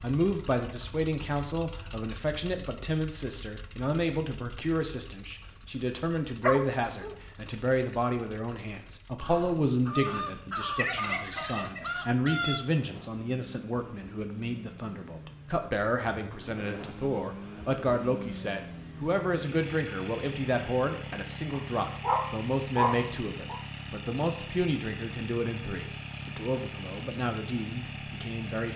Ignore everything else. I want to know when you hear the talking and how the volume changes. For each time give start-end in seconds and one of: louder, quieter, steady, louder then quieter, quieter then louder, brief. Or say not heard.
0.0-28.7 steady.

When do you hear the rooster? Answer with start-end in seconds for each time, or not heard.
9.2-12.7.